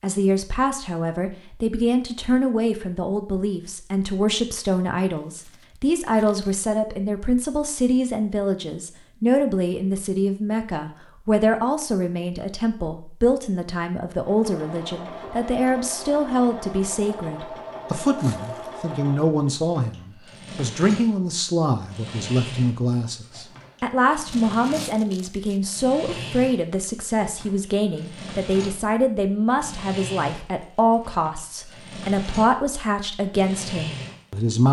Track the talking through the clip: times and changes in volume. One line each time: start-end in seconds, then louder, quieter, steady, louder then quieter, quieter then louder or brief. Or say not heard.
0.0-34.6 steady.